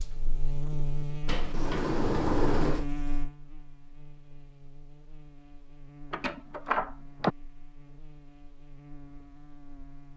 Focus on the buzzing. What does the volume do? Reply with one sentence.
The volume of the buzzing goes down.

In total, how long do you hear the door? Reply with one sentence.
The door can be heard for 3 seconds in total.